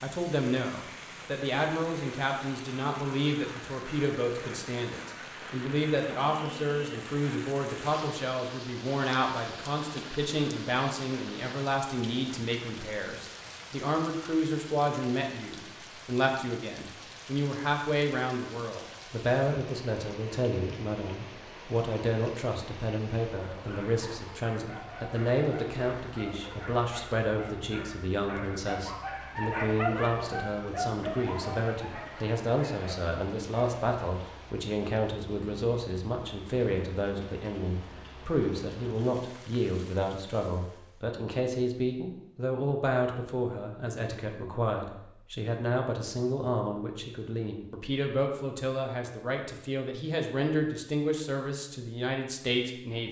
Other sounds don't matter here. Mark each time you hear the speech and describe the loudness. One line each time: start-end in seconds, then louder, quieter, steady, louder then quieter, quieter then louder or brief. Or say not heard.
0.0-53.0 steady.